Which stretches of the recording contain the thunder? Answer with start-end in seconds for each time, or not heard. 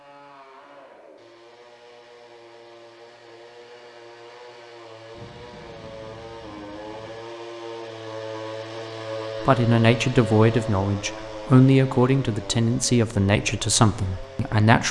5.1-7.2.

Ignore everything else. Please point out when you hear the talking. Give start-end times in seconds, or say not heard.
9.4-14.8.